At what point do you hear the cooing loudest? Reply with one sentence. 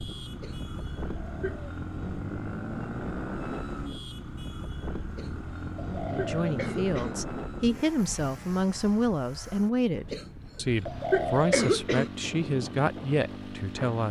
The volume of the cooing peaks at 11 seconds.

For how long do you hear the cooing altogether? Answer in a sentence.
You can hear the cooing for 2 seconds altogether.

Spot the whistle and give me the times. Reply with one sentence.
You can't hear the whistle here.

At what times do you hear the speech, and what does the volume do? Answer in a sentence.
You can hear the speech from 6.1 to 14.0 s, at a steady volume.